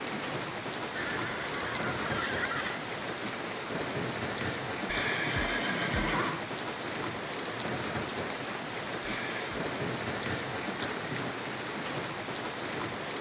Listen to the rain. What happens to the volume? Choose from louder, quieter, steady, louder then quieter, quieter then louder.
steady.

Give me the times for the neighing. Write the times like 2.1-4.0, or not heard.
0.9-2.9, 4.8-6.5, 9.0-9.7.